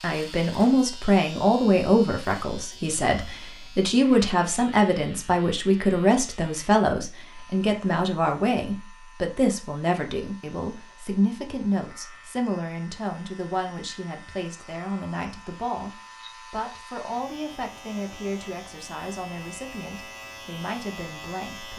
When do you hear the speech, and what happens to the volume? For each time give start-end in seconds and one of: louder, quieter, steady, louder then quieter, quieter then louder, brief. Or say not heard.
0.0-21.7 quieter.